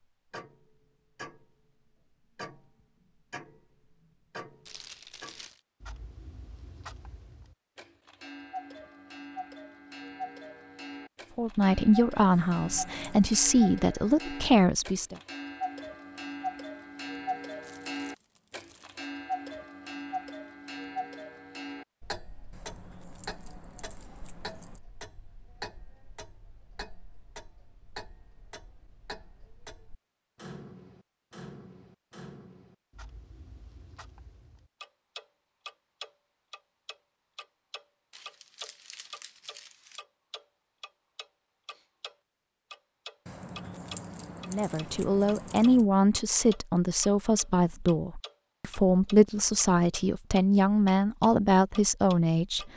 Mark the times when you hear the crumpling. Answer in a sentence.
You can hear the crumpling from 4.7 to 5.6 s, from 17.6 to 19.1 s and from 38.1 to 40.0 s.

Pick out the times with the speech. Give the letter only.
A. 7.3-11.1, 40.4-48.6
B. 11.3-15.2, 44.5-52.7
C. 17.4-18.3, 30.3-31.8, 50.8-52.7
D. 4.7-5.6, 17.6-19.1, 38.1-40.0
B.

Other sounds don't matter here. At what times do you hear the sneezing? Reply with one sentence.
You can't hear the sneezing here.